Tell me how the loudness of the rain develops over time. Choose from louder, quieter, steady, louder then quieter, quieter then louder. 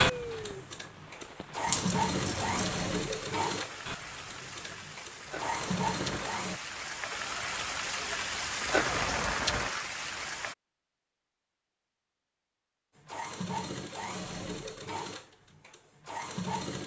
louder.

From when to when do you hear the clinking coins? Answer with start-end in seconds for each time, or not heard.
1.6-2.7.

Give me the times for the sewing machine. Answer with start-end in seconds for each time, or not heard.
0.0-6.6, 12.9-16.8.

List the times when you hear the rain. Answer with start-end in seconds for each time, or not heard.
0.0-10.6.